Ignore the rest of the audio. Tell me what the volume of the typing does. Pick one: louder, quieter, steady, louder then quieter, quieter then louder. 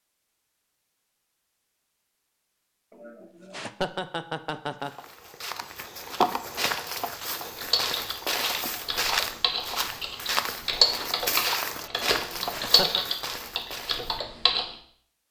louder then quieter.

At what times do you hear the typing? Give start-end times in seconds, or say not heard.
7.4-14.7.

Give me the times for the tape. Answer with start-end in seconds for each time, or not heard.
not heard.